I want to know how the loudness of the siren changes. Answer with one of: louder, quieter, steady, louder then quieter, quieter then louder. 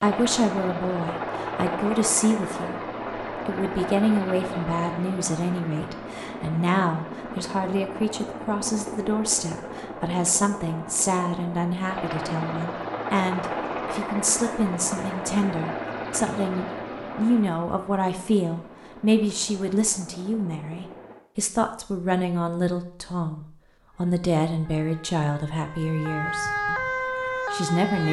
louder.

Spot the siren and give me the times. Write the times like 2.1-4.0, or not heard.
23.9-28.0.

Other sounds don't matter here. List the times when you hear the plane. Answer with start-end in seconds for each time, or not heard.
0.0-21.2.